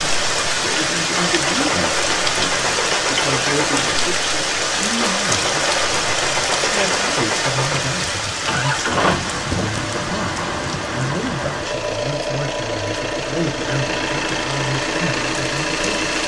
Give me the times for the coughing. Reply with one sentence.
You can't hear the coughing here.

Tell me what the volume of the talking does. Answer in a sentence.
The volume of the talking stays about the same.